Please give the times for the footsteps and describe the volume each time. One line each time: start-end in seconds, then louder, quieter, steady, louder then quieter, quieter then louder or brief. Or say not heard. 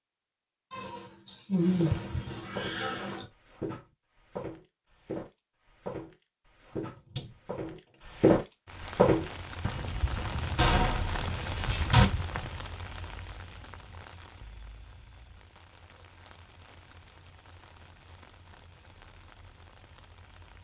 1.8-12.5 louder then quieter.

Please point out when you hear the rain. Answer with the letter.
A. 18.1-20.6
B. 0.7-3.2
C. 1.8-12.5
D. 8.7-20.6
D.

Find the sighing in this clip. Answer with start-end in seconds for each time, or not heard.
0.7-3.2.